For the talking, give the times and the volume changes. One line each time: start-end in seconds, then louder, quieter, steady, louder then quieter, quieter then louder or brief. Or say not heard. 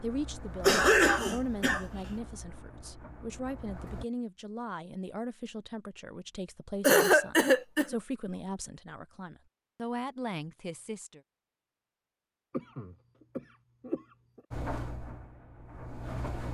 0.0-11.2 steady.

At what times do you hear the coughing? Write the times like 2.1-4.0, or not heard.
0.6-1.9, 6.8-8.0, 12.5-14.4.